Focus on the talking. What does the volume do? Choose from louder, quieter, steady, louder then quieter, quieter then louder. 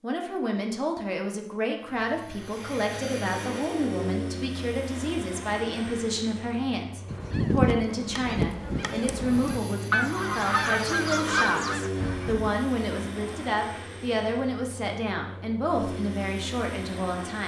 steady.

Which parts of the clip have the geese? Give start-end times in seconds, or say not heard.
7.0-12.5.